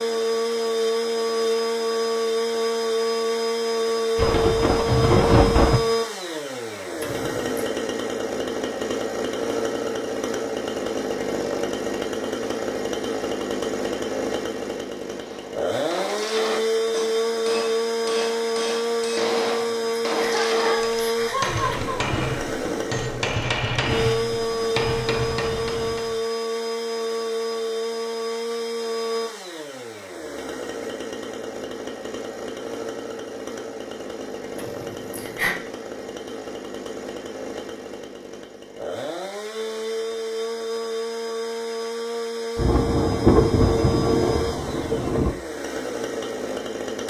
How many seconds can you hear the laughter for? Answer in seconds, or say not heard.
4 s.